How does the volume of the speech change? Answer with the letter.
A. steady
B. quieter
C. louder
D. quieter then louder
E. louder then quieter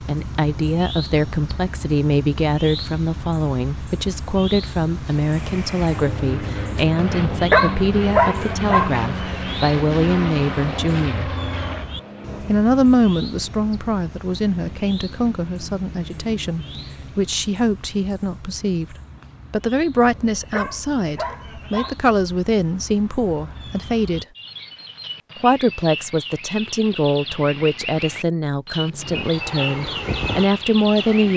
A.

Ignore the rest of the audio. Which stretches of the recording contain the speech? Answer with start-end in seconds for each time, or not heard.
0.0-11.3, 12.4-24.2, 25.4-31.3.